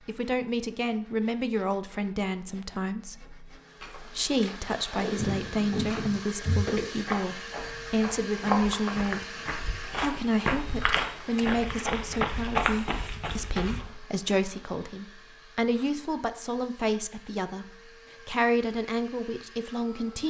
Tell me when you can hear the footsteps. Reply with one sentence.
You can hear the footsteps from 5.2 to 13.8 s.